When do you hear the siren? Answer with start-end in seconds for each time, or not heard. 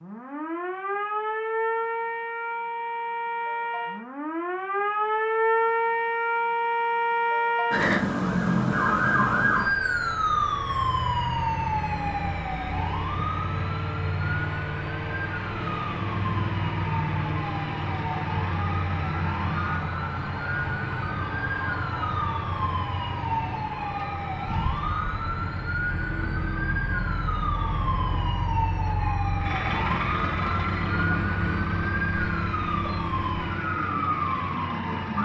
0.0-35.2.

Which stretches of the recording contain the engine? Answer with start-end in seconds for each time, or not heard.
15.6-35.2.